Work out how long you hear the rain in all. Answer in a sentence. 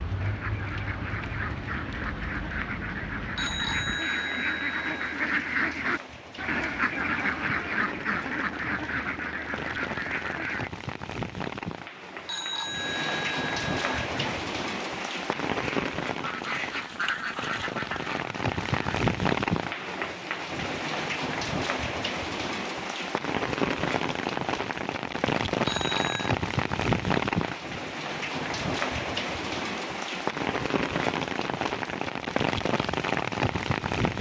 The rain can be heard for 34 seconds in total.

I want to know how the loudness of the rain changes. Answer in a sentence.
The volume of the rain goes up.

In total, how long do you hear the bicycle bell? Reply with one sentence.
The bicycle bell can be heard for 4 seconds in total.